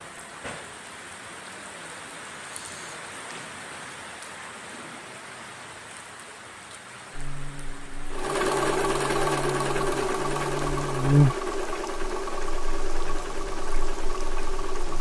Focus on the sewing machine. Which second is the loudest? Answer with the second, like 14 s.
9 s.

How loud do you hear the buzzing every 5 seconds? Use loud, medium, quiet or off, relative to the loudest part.
off, medium, loud.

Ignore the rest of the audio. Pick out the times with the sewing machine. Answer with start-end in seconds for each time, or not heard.
8.1-14.9.